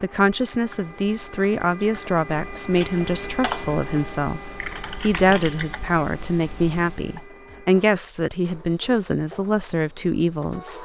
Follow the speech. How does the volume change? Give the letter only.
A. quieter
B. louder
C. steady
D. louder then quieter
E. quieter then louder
C.